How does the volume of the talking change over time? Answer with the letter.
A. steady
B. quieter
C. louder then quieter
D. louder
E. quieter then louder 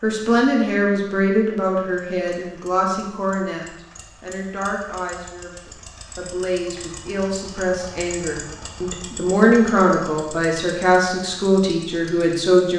E.